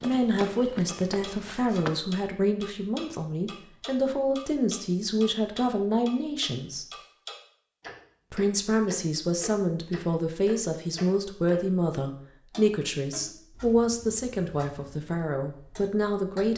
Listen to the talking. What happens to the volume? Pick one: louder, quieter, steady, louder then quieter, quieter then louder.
steady.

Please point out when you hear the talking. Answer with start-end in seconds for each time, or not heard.
0.0-6.9, 8.3-16.5.